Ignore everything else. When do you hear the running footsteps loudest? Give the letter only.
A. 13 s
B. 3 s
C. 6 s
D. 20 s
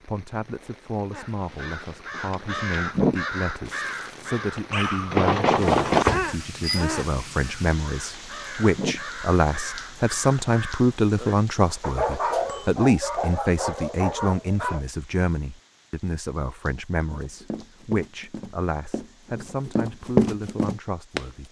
D.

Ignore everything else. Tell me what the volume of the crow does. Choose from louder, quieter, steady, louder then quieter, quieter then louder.
quieter.